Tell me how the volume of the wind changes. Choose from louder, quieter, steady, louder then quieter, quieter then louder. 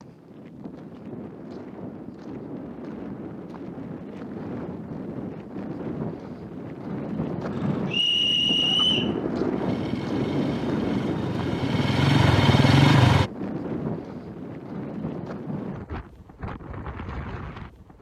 louder then quieter.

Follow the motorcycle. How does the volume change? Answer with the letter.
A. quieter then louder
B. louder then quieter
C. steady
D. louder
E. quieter
D.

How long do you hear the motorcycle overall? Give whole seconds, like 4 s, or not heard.
6 s.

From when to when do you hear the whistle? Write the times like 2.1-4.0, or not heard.
7.9-9.1.